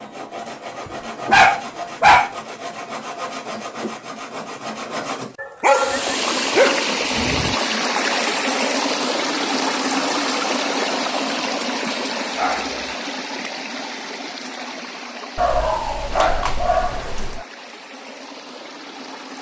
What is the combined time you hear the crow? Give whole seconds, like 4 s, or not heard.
not heard.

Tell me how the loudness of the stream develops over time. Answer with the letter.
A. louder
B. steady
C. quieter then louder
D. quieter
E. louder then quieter
D.